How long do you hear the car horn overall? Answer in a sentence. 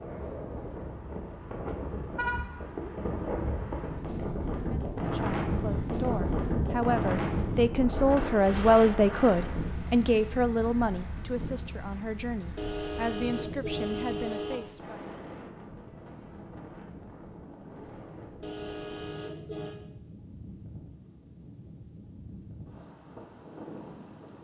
You can hear the car horn for 4 seconds altogether.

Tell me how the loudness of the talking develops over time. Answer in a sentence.
The loudness of the talking goes up, then down.